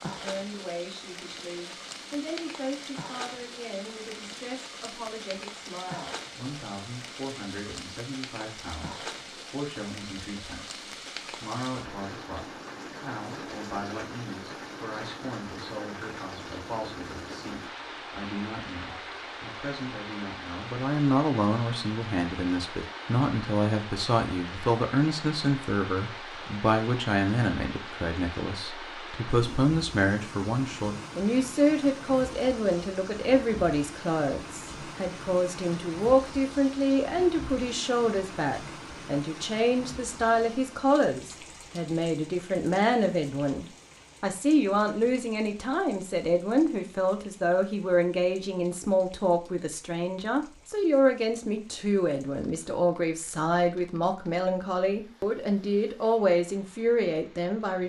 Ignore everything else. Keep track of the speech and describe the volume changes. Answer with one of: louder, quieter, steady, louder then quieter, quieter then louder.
louder.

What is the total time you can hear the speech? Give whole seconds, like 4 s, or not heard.
58 s.